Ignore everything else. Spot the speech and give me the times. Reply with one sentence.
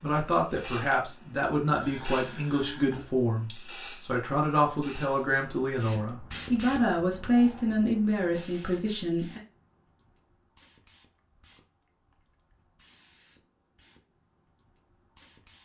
The speech can be heard from 0.0 to 9.4 s.